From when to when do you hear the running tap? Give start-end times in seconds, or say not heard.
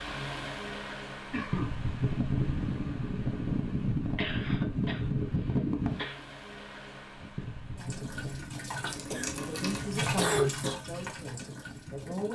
7.8-12.2.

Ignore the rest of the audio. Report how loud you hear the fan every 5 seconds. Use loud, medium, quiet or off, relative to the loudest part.
loud, loud, quiet.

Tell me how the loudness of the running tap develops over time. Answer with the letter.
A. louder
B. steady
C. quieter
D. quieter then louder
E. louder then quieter
E.